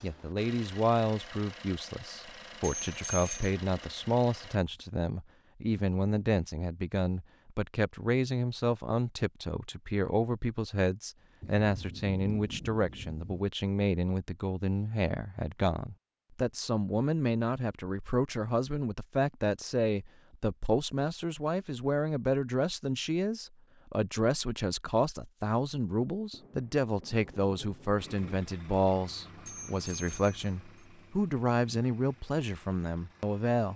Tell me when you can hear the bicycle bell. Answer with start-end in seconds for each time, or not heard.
2.6-3.5, 29.4-30.4.